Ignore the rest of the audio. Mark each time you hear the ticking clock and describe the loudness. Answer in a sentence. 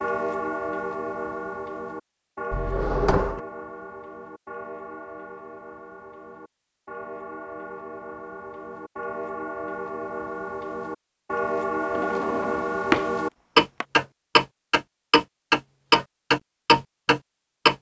You can hear the ticking clock from 0.0 to 17.7 s, getting quieter then louder.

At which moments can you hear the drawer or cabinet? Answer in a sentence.
You can hear the drawer or cabinet from 2.5 to 3.4 s and from 11.9 to 13.1 s.